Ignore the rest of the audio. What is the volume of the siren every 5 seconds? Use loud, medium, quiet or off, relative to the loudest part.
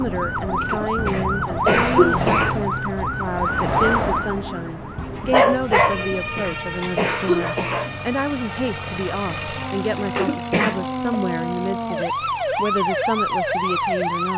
loud, medium, loud.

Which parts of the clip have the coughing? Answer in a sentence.
You can hear the coughing from 0.7 to 2.6 s, from 6.2 to 8.0 s and from 10.2 to 11.2 s.